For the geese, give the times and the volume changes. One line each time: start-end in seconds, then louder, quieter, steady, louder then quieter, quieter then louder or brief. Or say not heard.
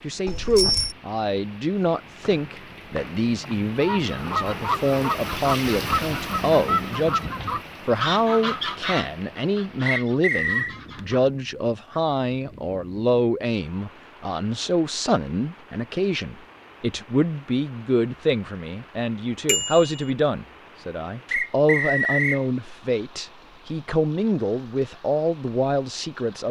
3.8-11.2 quieter.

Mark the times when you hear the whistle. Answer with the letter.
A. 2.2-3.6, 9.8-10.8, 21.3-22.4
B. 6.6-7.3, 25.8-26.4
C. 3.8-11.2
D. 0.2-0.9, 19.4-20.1
A.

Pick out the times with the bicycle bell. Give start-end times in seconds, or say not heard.
0.2-0.9, 19.4-20.1.